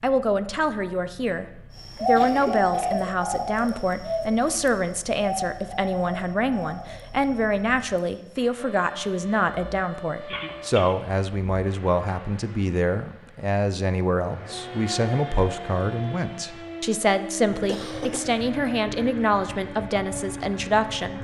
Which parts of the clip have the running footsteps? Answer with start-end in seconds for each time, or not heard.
not heard.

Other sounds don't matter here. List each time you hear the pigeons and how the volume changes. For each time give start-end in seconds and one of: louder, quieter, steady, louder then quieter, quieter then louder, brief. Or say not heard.
1.8-8.4 quieter.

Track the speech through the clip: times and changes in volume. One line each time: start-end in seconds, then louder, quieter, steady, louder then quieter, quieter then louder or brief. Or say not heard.
0.0-21.1 steady.